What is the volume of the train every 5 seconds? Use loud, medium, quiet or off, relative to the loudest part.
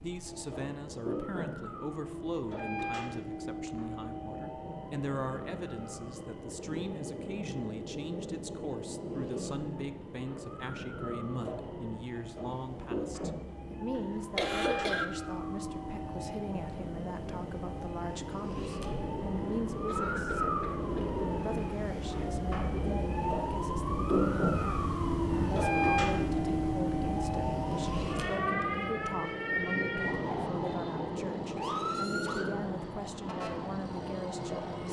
medium, medium, medium, medium, loud, loud, medium.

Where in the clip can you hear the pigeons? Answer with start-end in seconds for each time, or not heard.
not heard.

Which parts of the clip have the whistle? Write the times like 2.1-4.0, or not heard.
not heard.